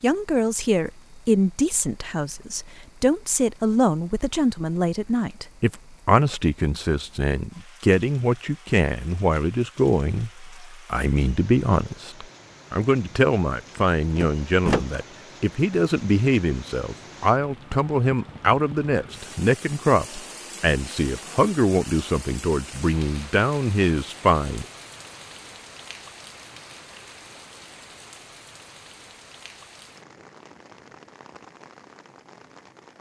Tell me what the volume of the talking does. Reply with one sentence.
The loudness of the talking stays about the same.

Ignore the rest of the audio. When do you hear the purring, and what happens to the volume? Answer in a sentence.
The purring can't be heard in this clip.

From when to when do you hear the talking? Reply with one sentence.
You can hear the talking from 0.0 to 24.6 s.